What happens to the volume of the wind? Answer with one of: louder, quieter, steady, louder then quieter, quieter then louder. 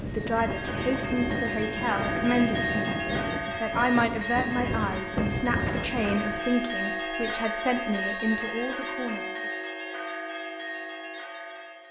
steady.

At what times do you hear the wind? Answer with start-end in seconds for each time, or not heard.
0.0-6.4.